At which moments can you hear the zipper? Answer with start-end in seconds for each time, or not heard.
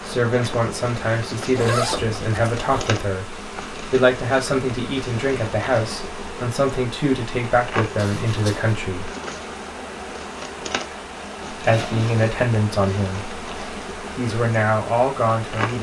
1.6-3.0, 8.0-8.8, 11.7-12.3.